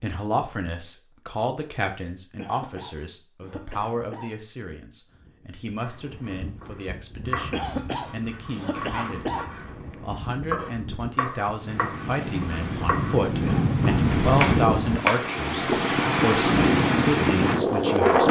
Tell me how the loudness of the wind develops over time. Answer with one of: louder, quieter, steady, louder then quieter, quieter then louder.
louder.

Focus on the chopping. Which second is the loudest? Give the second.
15 s.